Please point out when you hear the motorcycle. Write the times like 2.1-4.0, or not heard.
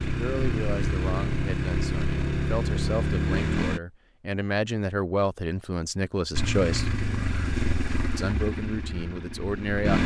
0.0-3.8, 6.3-10.0.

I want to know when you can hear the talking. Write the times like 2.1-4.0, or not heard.
0.0-6.9, 8.2-10.0.